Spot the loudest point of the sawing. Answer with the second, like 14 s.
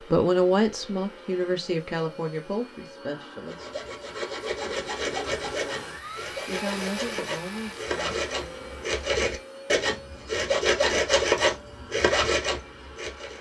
11 s.